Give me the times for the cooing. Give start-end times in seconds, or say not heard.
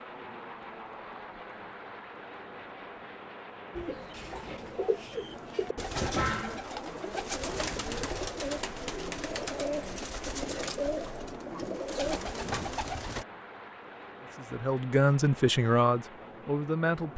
3.8-13.2.